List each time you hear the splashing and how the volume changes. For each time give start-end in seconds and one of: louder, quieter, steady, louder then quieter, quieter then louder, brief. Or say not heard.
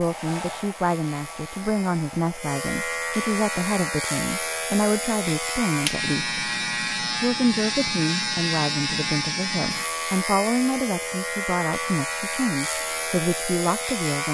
not heard.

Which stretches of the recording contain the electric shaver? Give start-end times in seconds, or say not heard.
0.0-14.2.